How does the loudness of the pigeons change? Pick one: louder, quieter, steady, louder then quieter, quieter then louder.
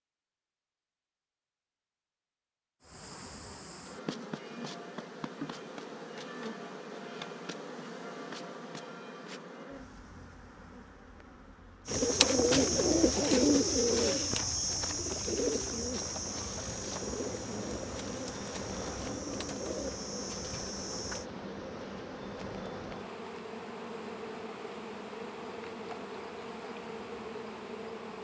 quieter.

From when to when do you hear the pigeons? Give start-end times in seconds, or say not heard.
11.8-21.3.